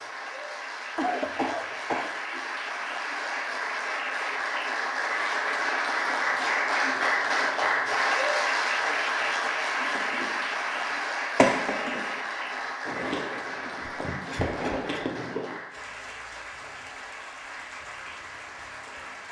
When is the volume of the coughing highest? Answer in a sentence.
The loudest moment of the coughing is at 1 second.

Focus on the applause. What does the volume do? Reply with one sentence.
The loudness of the applause goes up, then down.